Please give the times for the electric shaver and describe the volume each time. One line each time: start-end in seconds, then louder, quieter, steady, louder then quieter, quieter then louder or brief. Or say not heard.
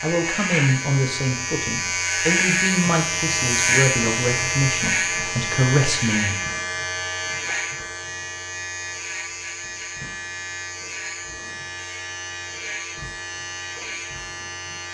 0.0-14.8 quieter.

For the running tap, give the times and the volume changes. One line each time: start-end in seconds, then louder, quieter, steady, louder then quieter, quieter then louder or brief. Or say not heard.
not heard.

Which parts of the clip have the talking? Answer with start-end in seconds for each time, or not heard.
0.0-6.3.